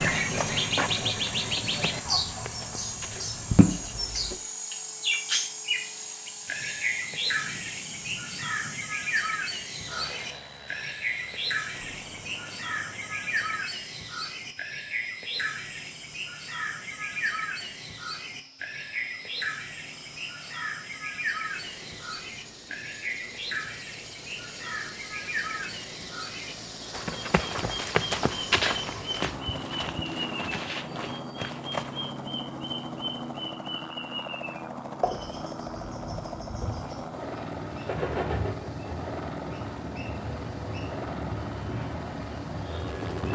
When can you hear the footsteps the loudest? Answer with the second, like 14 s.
29 s.